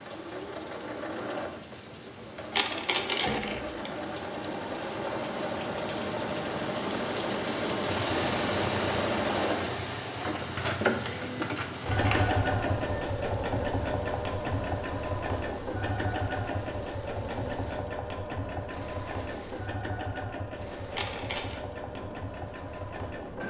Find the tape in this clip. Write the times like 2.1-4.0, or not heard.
not heard.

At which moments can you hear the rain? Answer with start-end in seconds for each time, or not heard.
0.0-23.4.